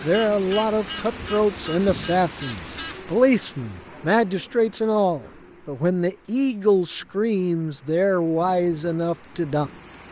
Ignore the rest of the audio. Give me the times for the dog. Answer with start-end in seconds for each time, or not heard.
not heard.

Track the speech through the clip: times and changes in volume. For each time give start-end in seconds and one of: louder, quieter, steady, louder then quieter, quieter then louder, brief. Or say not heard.
0.0-9.7 steady.